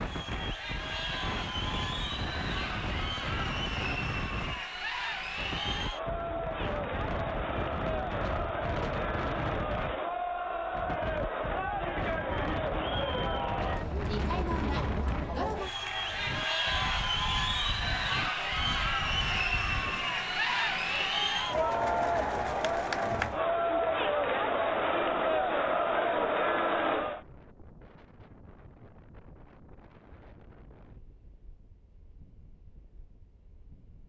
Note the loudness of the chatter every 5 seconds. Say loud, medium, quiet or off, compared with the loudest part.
medium, medium, medium, loud, loud, loud, off.